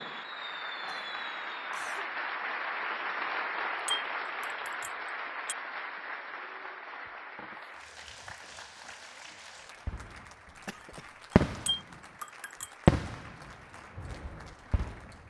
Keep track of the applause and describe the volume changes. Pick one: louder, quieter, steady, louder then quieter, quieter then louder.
quieter.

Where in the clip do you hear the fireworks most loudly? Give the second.
13 s.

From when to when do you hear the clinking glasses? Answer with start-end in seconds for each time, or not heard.
3.9-5.5, 11.7-12.7.